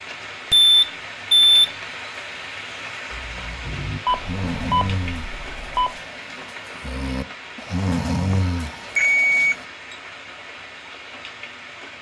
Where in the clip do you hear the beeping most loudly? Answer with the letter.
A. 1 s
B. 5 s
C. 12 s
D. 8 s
A.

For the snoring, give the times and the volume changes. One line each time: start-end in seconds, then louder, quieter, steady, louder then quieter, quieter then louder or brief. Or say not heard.
3.1-9.7 quieter then louder.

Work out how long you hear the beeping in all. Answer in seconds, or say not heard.
4 s.